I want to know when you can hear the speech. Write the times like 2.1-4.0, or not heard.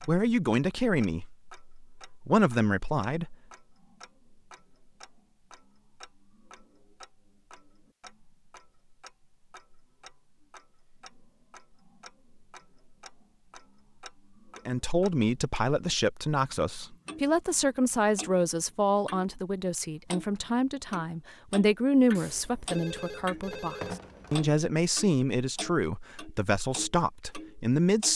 0.0-3.4, 14.7-28.1.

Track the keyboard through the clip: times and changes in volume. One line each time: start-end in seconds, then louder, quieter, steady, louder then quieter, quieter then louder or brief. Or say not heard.
not heard.